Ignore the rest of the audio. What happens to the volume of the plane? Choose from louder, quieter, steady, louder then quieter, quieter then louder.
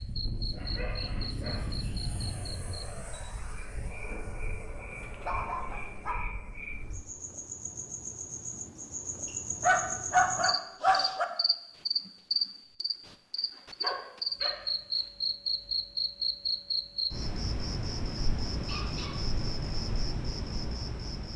quieter.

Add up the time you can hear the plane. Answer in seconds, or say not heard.
7 s.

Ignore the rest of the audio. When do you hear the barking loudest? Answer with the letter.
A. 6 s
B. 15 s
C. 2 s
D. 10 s
D.